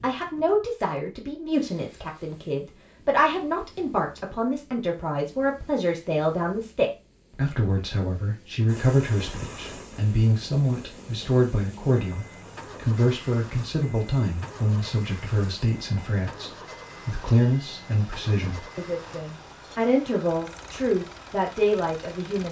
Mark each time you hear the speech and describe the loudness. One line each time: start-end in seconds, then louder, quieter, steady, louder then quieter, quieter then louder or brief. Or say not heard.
0.0-22.4 steady.